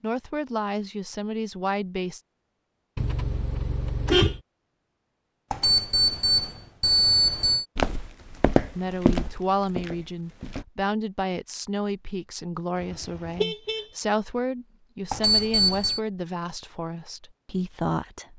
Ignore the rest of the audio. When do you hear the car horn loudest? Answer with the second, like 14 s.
4 s.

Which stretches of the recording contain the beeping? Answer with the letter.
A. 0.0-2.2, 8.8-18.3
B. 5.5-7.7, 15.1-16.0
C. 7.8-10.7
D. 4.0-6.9
B.